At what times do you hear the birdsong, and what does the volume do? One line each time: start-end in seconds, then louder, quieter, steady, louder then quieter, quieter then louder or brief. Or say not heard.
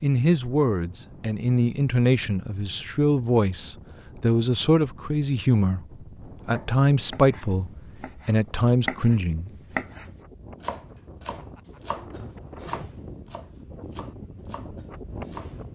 not heard.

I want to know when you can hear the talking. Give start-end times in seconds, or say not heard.
0.0-9.5.